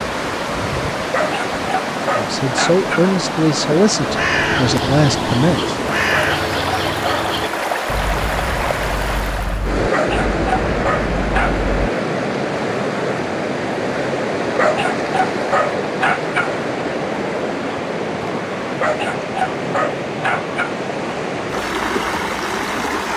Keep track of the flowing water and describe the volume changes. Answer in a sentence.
The loudness of the flowing water stays about the same.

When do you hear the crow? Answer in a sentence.
The crow can be heard from 4.0 to 11.8 s.